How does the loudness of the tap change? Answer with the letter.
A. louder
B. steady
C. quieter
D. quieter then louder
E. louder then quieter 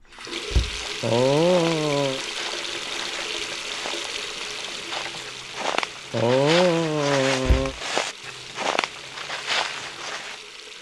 C.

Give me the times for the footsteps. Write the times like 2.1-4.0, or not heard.
0.7-10.4.